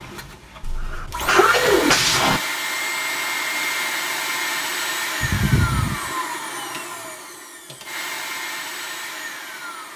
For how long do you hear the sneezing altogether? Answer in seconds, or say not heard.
3 s.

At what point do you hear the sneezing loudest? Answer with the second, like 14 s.
2 s.